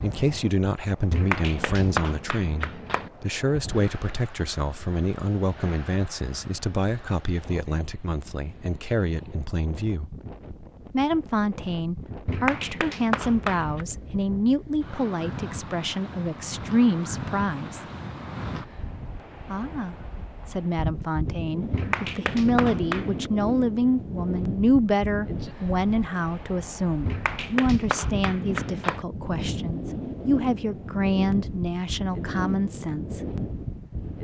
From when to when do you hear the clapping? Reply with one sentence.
You can hear the clapping from 1.1 to 3.1 s, from 12.2 to 13.8 s, from 21.7 to 23.3 s and from 27.1 to 29.1 s.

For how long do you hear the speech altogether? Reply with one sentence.
The speech can be heard for 31 seconds in total.